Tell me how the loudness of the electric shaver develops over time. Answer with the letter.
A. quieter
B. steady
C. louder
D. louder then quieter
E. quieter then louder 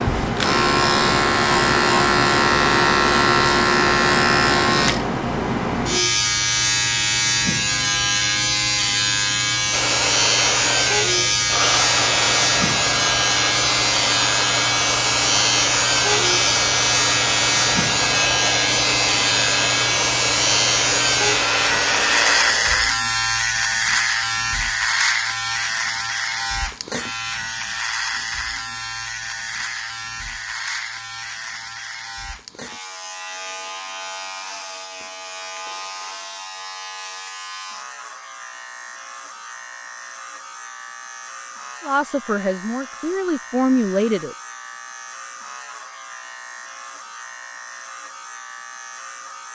A.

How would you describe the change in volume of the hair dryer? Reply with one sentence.
The volume of the hair dryer stays about the same.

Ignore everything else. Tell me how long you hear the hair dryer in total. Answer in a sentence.
You can hear the hair dryer for 13 seconds altogether.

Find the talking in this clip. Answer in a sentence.
The talking can be heard from 41.8 to 44.4 s.